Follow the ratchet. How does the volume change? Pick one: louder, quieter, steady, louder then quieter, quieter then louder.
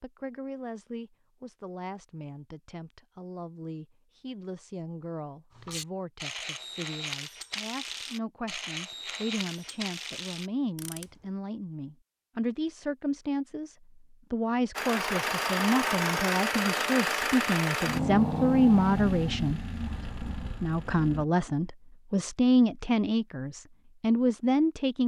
steady.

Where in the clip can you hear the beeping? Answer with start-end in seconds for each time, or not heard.
not heard.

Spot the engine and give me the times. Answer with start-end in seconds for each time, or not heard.
14.8-21.2.